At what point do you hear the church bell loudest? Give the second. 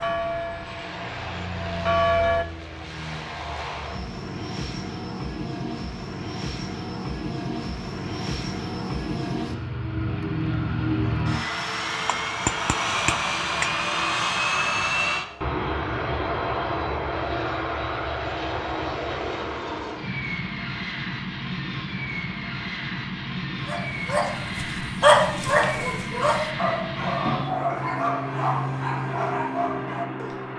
2 s.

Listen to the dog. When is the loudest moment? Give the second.
25 s.